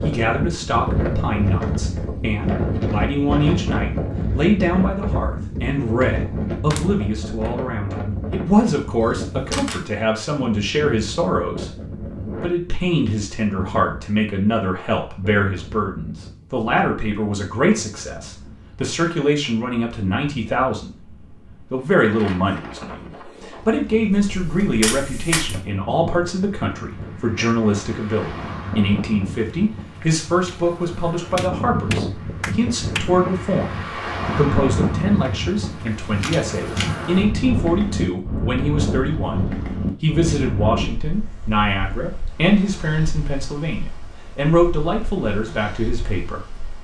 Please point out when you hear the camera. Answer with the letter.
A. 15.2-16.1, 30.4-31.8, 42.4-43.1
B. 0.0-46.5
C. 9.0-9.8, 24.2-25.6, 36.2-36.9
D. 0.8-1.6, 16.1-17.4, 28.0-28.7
C.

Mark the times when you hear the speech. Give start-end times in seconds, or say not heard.
0.0-46.5.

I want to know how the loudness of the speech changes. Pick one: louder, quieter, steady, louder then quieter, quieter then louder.
steady.